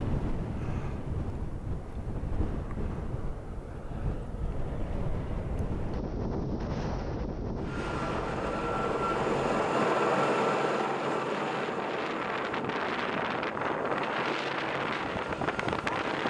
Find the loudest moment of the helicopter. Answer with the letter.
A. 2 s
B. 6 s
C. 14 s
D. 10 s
D.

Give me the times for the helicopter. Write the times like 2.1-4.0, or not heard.
7.5-16.2.